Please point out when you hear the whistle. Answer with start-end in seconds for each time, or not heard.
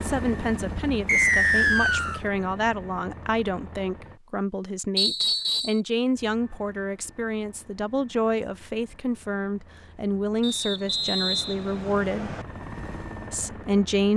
1.1-2.2, 5.0-5.8, 10.4-12.4.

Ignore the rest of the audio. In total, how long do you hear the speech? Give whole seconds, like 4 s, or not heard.
13 s.